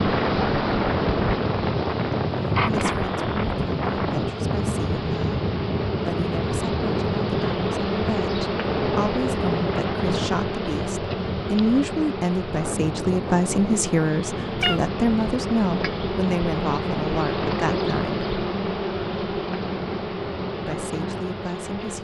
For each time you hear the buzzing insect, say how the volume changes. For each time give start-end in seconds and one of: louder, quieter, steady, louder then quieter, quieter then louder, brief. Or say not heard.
0.0-21.9 steady.